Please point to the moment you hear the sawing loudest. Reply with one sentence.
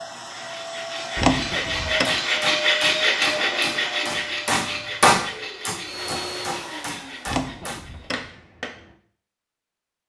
The loudest moment of the sawing is at 3 seconds.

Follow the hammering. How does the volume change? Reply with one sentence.
The loudness of the hammering goes up, then down.